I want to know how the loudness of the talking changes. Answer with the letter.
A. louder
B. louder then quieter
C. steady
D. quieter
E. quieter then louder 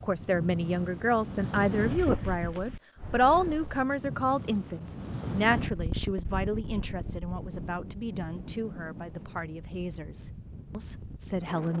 D.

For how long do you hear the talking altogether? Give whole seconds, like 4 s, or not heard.
12 s.